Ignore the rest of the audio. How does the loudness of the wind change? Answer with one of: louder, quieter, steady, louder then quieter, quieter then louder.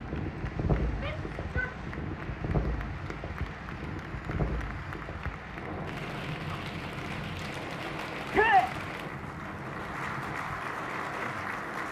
quieter.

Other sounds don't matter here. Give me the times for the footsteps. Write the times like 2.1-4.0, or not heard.
not heard.